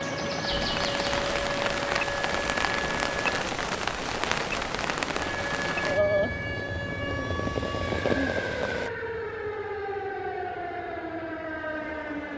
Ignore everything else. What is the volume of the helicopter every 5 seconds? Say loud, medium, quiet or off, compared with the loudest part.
loud, loud, quiet.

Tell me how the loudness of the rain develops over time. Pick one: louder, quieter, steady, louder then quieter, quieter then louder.
steady.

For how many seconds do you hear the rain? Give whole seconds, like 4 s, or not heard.
9 s.